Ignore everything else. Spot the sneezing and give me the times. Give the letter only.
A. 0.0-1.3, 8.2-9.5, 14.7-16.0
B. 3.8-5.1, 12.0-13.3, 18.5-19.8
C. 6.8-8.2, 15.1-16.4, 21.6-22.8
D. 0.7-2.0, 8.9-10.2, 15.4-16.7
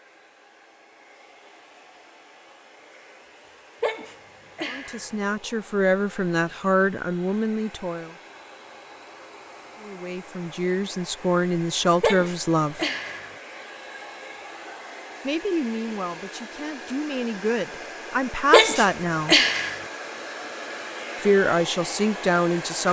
B.